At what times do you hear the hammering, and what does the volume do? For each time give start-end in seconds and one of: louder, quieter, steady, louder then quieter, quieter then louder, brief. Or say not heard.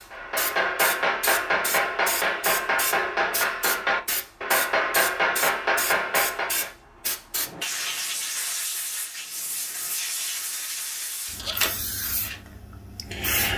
0.1-6.7 steady.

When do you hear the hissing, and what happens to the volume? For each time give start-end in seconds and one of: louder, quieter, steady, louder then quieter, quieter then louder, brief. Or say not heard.
0.0-13.5 steady.